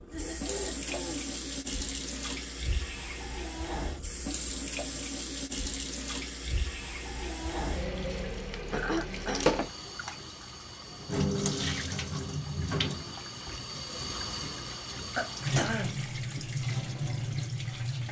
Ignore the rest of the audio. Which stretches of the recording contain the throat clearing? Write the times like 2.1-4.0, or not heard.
0.1-1.4, 8.7-9.5, 15.2-16.4.